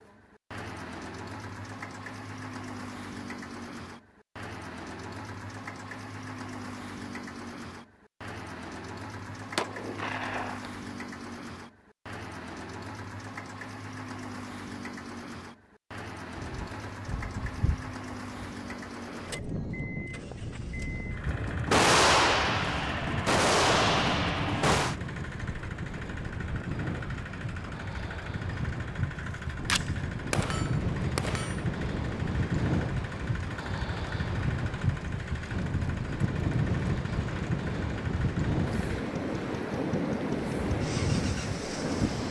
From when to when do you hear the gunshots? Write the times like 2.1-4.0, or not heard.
9.3-10.7, 21.2-24.9, 29.6-31.6.